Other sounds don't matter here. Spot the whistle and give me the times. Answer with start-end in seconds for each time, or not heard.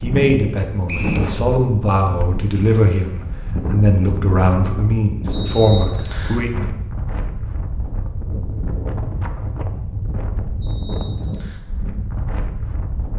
0.8-1.3, 5.3-6.4, 10.6-11.6.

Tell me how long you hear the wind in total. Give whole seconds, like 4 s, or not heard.
13 s.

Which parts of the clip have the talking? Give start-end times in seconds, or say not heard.
0.0-6.5.